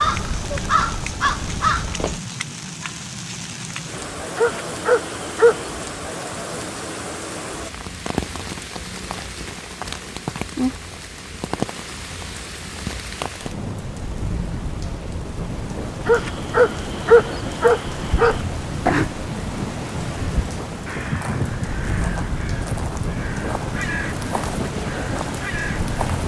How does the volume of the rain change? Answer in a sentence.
The loudness of the rain stays about the same.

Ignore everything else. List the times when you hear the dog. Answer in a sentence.
You can hear the dog from 4.3 to 5.7 s and from 16.1 to 18.4 s.